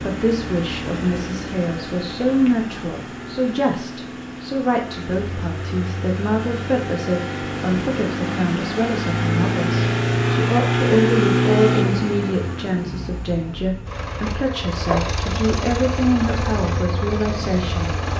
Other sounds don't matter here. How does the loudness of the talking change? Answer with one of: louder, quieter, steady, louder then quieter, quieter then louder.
steady.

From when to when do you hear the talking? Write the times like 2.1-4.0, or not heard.
0.0-17.9.